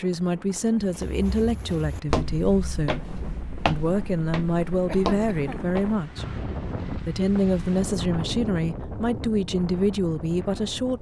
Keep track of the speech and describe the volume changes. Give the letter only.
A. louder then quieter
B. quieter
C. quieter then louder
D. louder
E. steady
E.